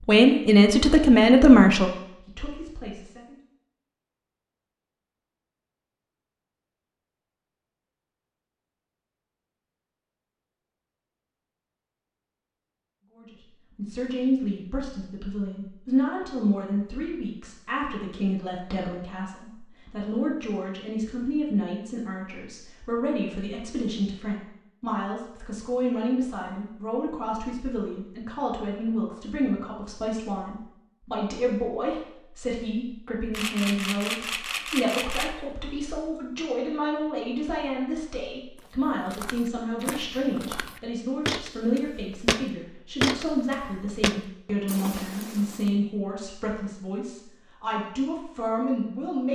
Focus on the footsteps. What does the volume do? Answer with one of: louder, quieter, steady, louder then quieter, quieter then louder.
louder then quieter.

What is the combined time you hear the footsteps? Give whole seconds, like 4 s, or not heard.
7 s.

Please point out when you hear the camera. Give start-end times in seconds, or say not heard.
33.3-35.3.